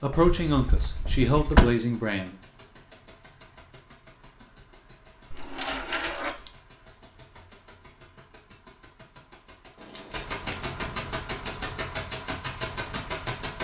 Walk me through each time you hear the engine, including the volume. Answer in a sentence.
The engine can be heard from 0.0 to 13.5 s, getting louder.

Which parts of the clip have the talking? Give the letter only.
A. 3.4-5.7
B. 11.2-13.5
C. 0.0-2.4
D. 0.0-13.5
C.